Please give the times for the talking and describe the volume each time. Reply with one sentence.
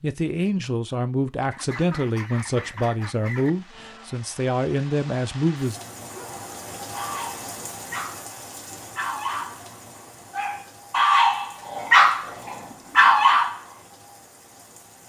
The talking can be heard from 0.0 to 5.8 s, at a steady volume.